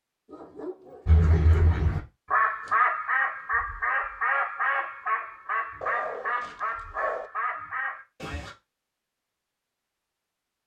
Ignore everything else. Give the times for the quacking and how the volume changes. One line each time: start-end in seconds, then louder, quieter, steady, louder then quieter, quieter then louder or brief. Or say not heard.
1.1-8.6 quieter.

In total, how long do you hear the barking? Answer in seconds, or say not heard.
3 s.